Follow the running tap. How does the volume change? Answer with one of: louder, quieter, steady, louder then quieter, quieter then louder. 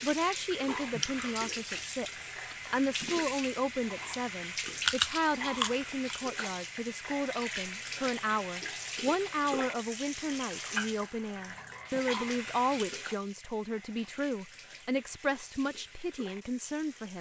quieter.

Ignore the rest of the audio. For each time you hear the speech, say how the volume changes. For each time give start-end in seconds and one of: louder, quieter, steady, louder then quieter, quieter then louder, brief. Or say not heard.
0.0-17.1 steady.